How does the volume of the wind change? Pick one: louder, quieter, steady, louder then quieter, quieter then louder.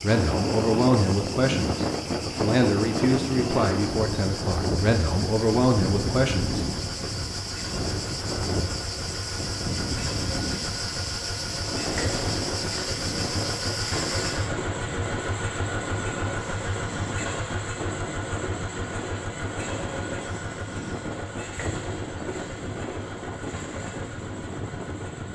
quieter.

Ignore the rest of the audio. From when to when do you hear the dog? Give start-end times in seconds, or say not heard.
not heard.